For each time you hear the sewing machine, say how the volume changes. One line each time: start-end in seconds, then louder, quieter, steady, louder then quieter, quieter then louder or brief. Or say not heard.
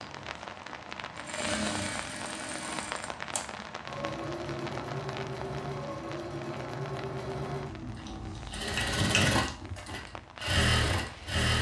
0.0-11.5 louder.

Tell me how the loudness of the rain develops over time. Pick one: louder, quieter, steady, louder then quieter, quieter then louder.
quieter.